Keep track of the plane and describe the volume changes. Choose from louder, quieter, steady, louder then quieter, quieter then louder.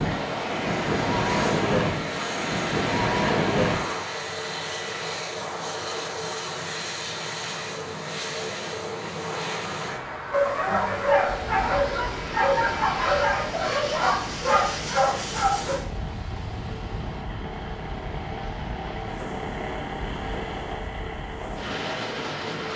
steady.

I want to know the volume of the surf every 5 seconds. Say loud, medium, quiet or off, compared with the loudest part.
loud, quiet, quiet, quiet, quiet.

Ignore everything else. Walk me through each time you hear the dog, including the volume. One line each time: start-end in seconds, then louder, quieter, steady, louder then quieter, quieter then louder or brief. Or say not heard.
10.3-15.8 steady.